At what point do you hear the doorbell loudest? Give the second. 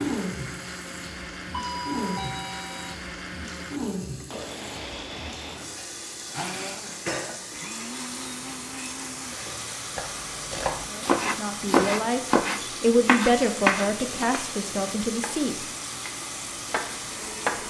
2 s.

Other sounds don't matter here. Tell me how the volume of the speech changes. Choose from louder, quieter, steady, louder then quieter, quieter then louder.
louder then quieter.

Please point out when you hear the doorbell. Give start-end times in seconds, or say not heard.
1.5-3.0.